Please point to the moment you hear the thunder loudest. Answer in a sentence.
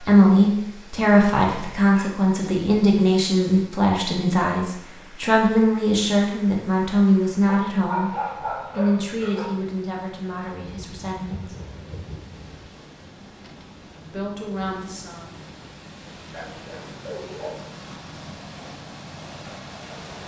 The volume of the thunder peaks at 12 seconds.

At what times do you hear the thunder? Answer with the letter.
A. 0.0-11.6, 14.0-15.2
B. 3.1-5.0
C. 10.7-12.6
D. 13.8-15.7
C.